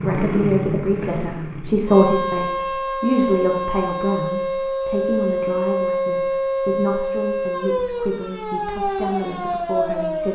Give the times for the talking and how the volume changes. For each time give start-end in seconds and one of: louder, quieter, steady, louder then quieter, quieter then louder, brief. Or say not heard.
0.0-10.3 quieter.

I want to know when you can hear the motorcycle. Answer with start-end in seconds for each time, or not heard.
0.0-1.9.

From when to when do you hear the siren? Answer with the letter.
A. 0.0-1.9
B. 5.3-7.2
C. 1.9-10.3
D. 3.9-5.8
C.